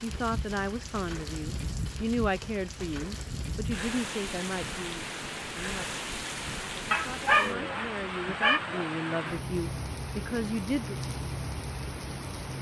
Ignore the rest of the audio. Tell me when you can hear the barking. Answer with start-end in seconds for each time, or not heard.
6.9-8.6.